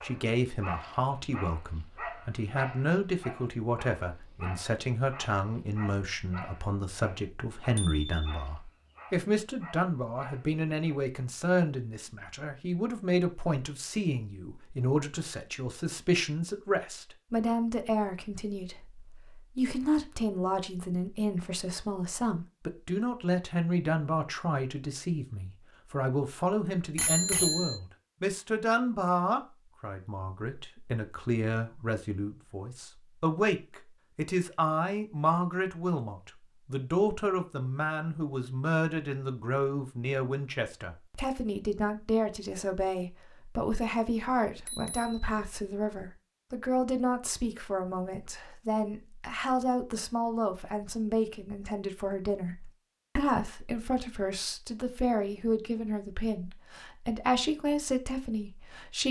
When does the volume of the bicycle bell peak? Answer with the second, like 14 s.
27 s.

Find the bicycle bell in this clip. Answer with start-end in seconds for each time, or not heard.
7.8-8.2, 26.9-27.8, 44.5-45.5.